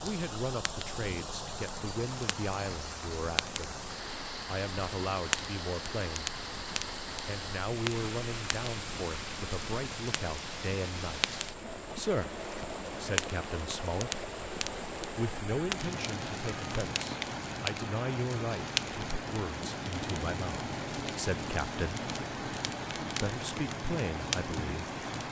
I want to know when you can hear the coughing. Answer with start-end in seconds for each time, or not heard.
not heard.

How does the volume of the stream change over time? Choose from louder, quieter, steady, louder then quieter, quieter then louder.
steady.